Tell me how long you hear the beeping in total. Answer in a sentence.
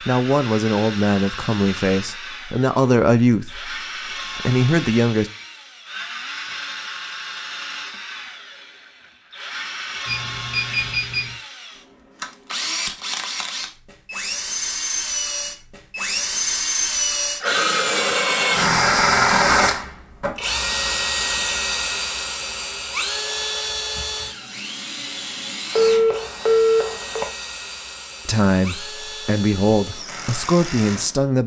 You can hear the beeping for 3 seconds altogether.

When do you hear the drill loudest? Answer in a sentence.
The loudest moment of the drill is at 19 seconds.